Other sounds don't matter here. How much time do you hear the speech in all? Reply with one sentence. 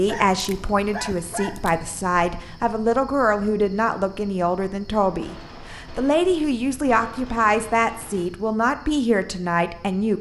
The speech can be heard for 10 seconds in total.